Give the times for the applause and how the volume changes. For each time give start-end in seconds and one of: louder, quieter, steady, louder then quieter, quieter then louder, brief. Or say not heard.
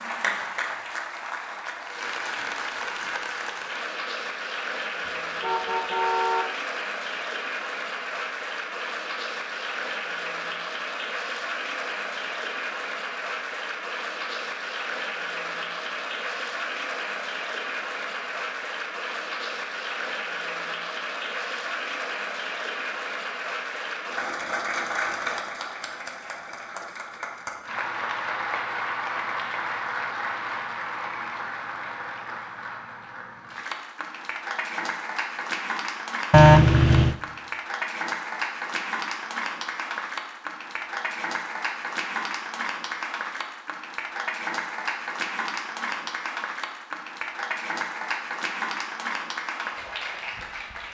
0.0-50.9 steady.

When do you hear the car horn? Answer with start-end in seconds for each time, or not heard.
5.0-6.5, 36.3-37.1.